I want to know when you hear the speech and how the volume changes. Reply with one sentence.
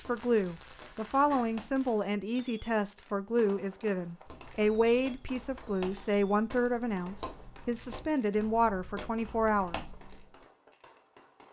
You can hear the speech from 0.0 to 9.8 s, at a steady volume.